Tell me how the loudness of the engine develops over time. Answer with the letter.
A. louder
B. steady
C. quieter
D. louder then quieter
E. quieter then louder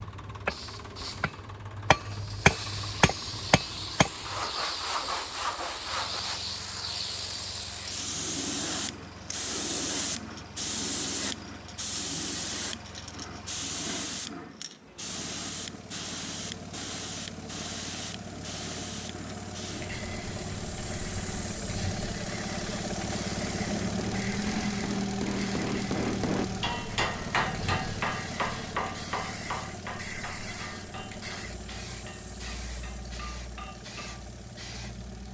D.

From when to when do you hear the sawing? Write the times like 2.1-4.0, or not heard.
4.2-6.4.